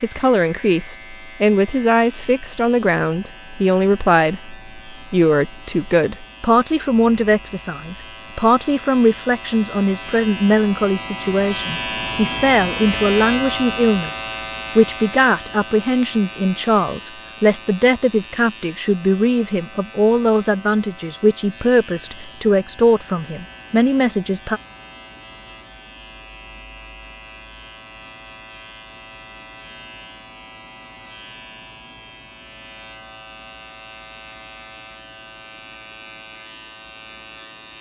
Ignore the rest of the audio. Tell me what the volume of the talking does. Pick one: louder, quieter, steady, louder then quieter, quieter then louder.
steady.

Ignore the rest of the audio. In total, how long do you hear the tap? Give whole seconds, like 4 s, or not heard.
not heard.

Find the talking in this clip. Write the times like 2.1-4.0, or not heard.
0.0-24.6.